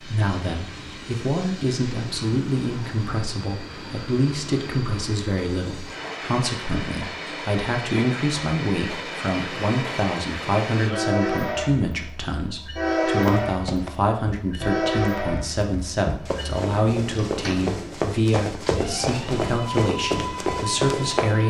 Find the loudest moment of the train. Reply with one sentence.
The volume of the train peaks at 13 seconds.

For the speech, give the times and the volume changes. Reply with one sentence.
You can hear the speech from 0.0 to 21.4 s, at a steady volume.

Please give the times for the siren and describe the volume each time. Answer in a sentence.
The siren can't be heard in this clip.